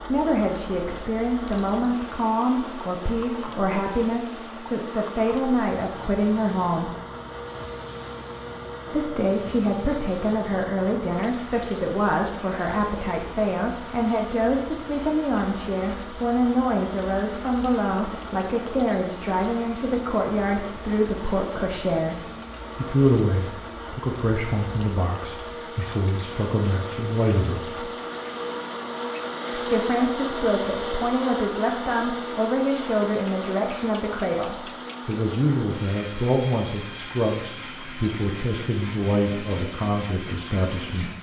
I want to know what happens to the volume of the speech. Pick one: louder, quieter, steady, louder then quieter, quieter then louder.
steady.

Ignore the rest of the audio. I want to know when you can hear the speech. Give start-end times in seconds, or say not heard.
0.0-6.9, 8.9-22.1, 22.8-27.9, 29.5-41.1.